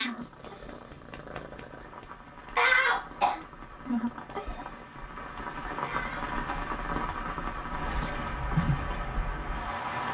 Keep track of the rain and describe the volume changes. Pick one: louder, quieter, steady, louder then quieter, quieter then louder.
louder.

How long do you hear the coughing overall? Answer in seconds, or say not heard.
2 s.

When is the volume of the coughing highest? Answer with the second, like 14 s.
3 s.